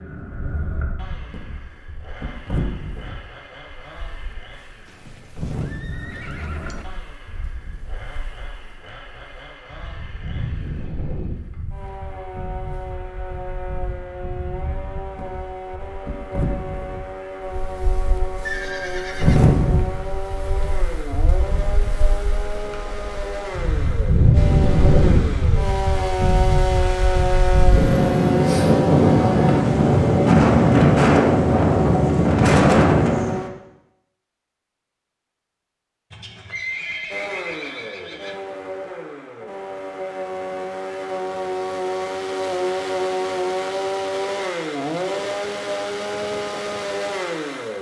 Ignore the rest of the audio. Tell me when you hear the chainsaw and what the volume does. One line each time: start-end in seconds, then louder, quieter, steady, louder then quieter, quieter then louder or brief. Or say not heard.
0.0-33.5 louder
37.1-47.7 louder.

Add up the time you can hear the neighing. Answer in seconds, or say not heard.
5 s.